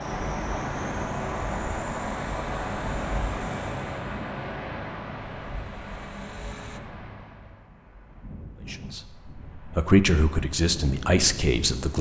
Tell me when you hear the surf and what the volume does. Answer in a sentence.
The surf can be heard from 0.0 to 11.9 s, getting quieter then louder.